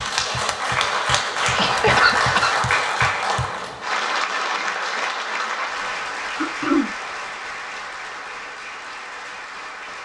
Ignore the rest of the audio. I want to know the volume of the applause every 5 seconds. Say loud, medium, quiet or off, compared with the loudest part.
loud, medium.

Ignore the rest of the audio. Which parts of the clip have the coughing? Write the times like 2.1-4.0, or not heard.
1.5-2.5, 6.3-6.9.